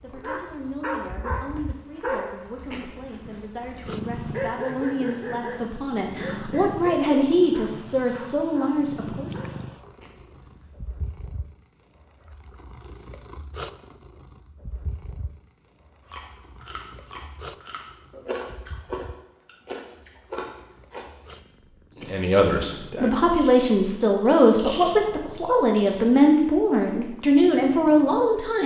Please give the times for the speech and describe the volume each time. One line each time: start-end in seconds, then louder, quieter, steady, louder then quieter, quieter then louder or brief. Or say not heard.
0.0-9.3 louder
22.1-28.6 steady.